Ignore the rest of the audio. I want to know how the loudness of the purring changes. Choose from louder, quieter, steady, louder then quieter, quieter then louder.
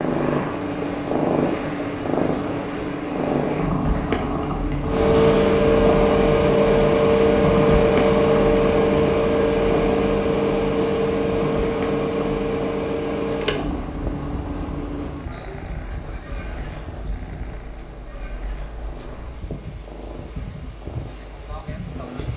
quieter.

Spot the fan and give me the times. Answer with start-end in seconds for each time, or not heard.
4.8-22.3.